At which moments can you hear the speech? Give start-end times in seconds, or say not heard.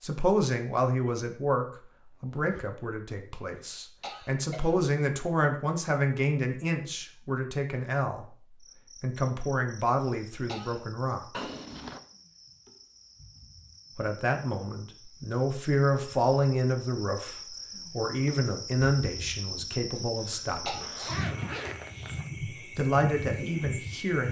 0.0-8.2, 9.0-11.4, 13.9-21.1, 22.8-24.2.